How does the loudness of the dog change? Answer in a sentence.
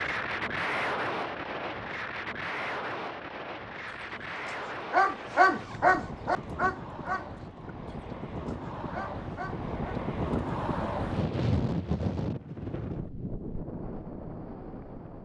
The volume of the dog goes down, then up.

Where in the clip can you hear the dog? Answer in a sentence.
The dog can be heard from 3.9 to 10.0 s.